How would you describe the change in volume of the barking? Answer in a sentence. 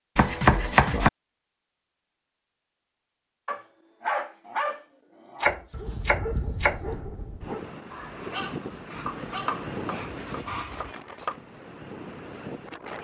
The volume of the barking goes down.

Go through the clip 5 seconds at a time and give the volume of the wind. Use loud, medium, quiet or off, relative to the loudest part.
off, loud, loud.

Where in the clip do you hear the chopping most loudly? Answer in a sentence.
The loudest moment of the chopping is at 1 second.